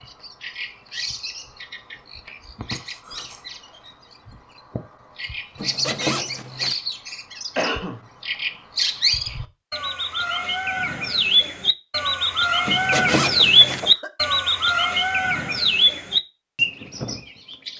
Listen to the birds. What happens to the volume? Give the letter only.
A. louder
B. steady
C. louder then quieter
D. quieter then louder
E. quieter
A.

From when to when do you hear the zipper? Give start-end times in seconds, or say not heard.
5.5-6.8, 12.7-13.8.